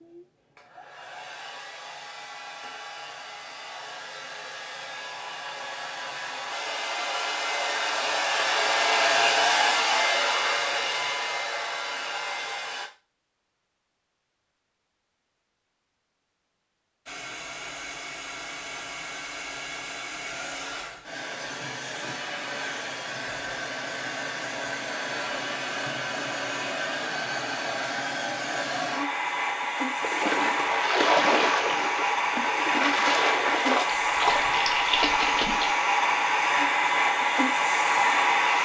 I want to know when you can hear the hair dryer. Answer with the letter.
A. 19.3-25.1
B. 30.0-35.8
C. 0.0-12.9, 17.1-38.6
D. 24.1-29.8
C.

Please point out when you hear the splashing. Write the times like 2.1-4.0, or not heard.
30.0-35.8.